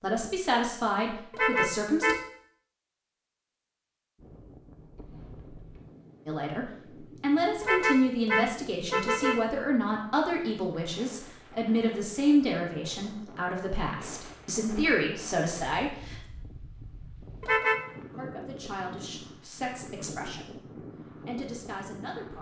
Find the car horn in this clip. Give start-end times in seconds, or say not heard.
1.3-2.2, 7.6-9.4, 17.4-17.8.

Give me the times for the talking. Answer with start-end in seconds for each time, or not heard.
0.0-2.1, 6.2-16.2, 18.1-22.3.